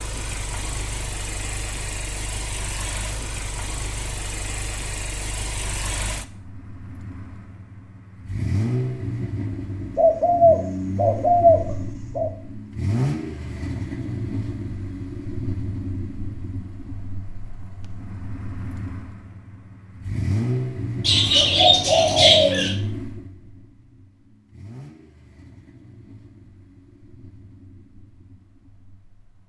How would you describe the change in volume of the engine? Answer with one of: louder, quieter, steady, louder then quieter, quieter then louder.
quieter.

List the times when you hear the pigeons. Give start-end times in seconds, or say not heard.
9.9-12.3, 21.1-22.7.